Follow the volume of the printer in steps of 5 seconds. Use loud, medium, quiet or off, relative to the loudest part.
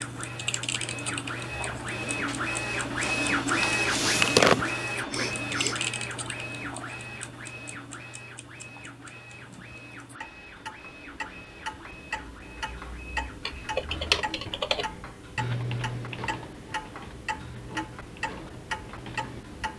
loud, medium, quiet, quiet.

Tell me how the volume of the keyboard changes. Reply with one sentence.
The loudness of the keyboard goes down.